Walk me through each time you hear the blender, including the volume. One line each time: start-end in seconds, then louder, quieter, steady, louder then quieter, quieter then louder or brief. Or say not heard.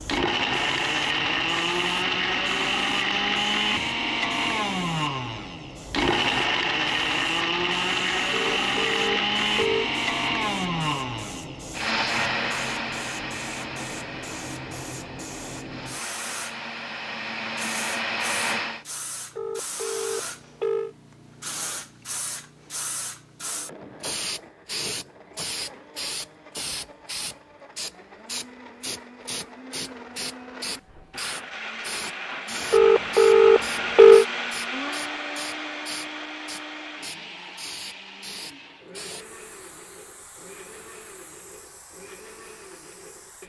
0.0-18.9 quieter
23.4-43.4 louder then quieter.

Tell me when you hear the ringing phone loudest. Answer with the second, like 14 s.
34 s.